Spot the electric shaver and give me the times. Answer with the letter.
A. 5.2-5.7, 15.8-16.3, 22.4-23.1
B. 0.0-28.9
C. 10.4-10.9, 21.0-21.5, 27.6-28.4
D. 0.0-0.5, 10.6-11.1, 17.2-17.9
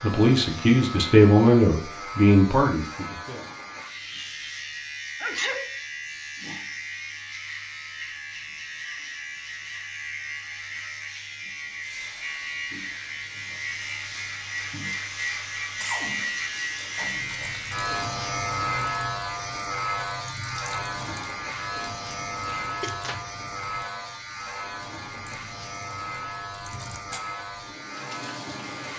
B.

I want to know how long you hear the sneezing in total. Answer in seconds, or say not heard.
2 s.